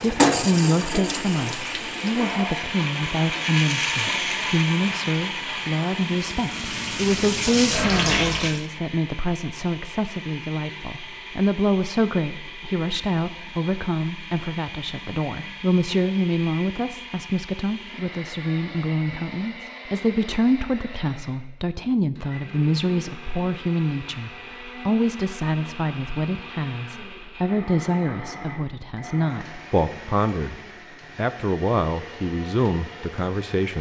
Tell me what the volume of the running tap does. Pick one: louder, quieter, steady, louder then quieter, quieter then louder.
quieter then louder.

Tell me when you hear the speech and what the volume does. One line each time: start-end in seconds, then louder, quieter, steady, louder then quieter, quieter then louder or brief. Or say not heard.
0.0-33.7 steady.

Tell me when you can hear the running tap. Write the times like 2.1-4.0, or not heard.
0.0-8.7.